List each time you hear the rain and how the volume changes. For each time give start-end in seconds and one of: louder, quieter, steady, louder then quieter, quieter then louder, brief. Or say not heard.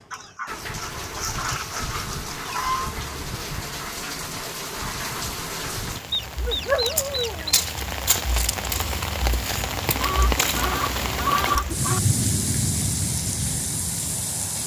0.0-14.6 louder.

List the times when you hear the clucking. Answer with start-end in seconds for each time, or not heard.
0.1-3.0, 6.1-7.7, 10.0-12.0.